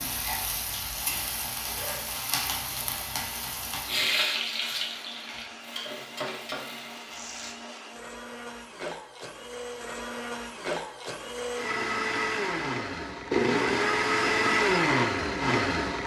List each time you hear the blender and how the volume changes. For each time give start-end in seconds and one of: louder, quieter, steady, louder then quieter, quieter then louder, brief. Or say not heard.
0.0-16.0 louder.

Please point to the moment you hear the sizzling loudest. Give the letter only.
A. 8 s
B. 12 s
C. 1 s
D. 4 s
D.